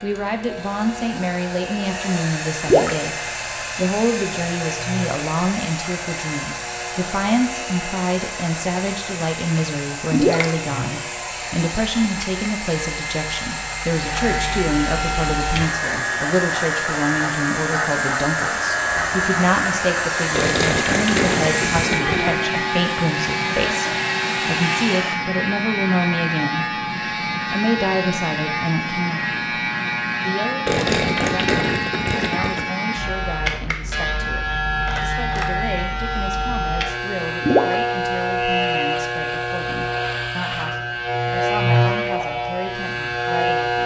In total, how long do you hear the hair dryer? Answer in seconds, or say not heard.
25 s.